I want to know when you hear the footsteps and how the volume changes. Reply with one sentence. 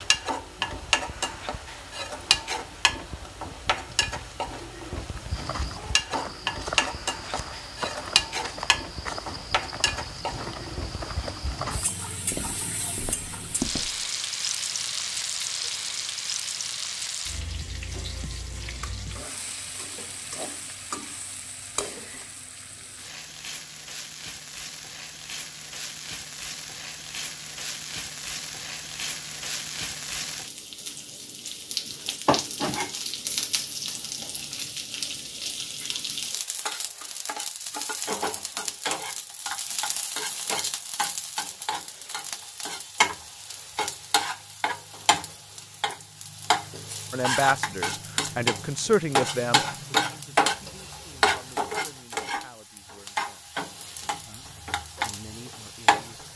You can hear the footsteps from 5.2 to 14.1 s, at a steady volume.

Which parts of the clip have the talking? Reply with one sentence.
The talking can be heard from 47.1 to 53.5 s and from 54.2 to 56.3 s.